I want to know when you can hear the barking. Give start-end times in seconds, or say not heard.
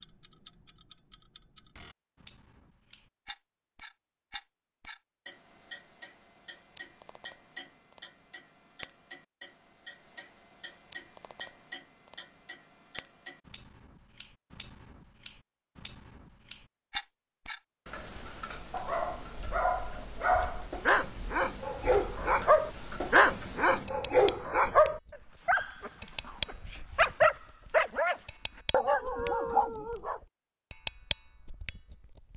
18.6-30.2.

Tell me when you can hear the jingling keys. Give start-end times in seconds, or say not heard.
not heard.